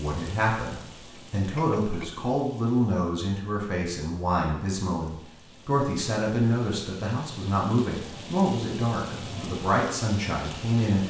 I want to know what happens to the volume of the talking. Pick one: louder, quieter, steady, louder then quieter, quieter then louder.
steady.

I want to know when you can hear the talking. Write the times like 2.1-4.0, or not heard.
0.0-11.0.